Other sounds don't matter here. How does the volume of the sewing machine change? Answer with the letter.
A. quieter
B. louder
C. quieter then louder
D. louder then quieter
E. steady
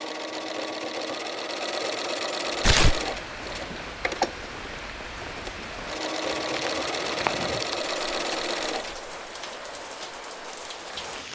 E.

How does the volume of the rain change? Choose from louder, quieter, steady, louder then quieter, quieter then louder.
steady.